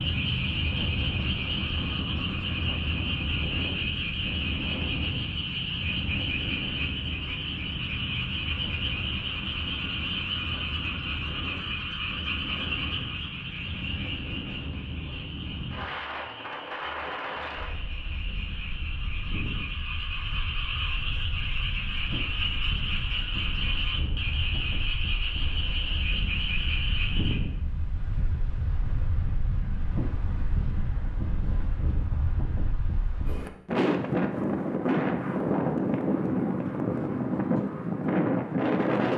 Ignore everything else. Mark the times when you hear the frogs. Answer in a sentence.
You can hear the frogs from 0.0 to 27.4 s.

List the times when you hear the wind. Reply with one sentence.
You can hear the wind from 0.0 to 39.1 s.